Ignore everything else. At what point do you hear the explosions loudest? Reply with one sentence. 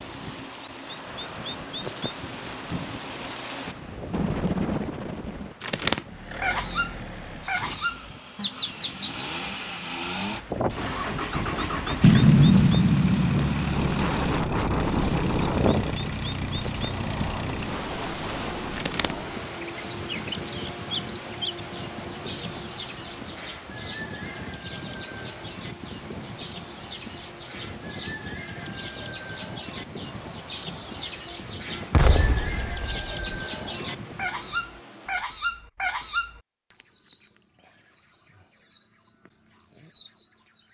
The volume of the explosions peaks at 12 seconds.